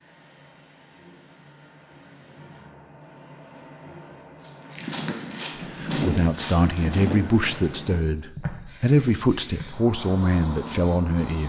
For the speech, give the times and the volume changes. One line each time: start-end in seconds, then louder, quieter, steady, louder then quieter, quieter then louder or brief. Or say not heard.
5.8-11.4 steady.